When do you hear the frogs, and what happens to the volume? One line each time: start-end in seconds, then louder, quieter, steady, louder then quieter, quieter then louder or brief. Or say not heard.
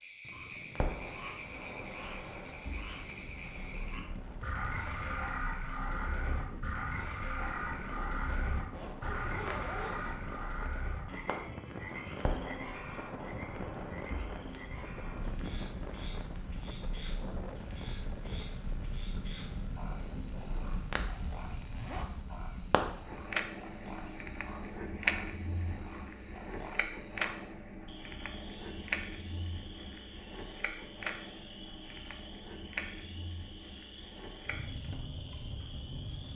0.0-36.3 quieter.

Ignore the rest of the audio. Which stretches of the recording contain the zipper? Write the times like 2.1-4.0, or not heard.
8.2-10.2, 21.4-22.1.